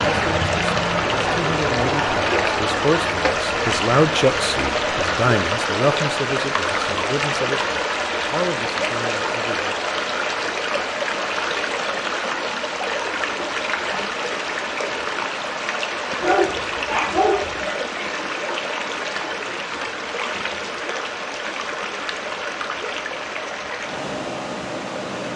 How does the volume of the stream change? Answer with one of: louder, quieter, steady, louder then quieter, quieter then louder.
quieter.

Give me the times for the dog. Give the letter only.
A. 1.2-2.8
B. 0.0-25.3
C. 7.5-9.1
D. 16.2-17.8
D.